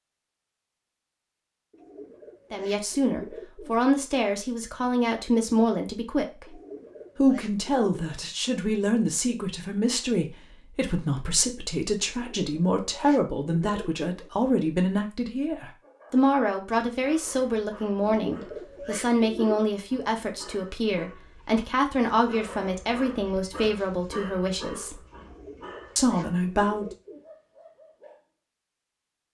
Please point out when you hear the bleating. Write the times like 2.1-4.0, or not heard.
not heard.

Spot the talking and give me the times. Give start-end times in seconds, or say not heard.
2.5-6.5, 7.2-25.0, 25.9-26.9.